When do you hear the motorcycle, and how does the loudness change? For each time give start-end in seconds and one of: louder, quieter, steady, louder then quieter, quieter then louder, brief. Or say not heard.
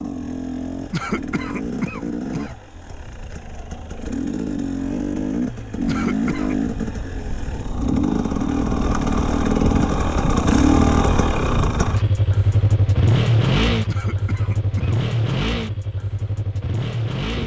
0.0-17.4 louder then quieter.